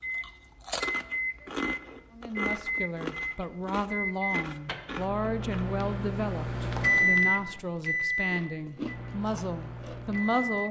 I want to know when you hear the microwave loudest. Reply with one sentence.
The volume of the microwave peaks at 7 seconds.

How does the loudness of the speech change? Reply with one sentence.
The loudness of the speech stays about the same.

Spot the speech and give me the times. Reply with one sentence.
The speech can be heard from 2.1 to 10.6 s.